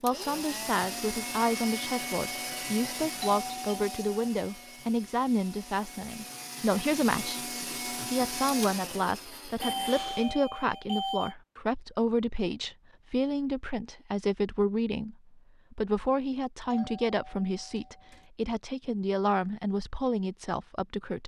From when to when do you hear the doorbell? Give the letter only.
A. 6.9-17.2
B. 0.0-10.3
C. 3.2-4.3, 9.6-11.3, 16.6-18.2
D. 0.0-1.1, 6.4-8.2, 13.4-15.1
C.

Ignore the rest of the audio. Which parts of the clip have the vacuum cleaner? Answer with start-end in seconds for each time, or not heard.
0.0-10.3.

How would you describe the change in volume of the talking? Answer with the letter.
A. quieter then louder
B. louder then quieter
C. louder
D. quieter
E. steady
E.